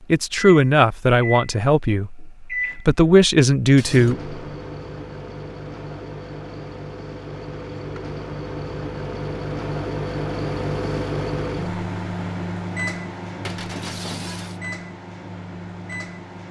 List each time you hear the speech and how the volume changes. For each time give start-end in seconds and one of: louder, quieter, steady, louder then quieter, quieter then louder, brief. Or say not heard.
0.1-4.3 quieter then louder.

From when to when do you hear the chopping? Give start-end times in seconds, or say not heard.
not heard.